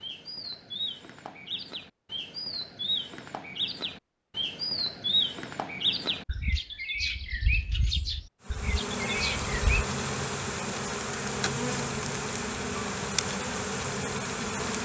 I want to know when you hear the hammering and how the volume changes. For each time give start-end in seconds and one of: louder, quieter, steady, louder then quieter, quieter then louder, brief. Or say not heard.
not heard.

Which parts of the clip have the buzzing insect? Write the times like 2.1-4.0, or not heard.
8.4-14.8.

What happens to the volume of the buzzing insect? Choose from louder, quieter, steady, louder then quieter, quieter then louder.
steady.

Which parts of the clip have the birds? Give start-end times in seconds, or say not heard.
0.0-9.8.